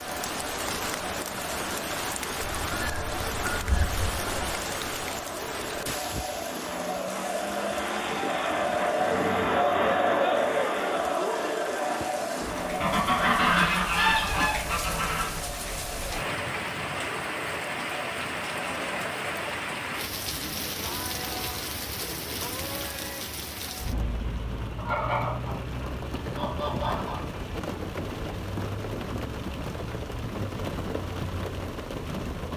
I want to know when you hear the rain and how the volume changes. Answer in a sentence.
The rain can be heard from 0.0 to 32.5 s, getting quieter then louder.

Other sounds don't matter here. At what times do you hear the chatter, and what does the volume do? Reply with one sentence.
You can hear the chatter from 0.0 to 19.6 s, getting louder then quieter.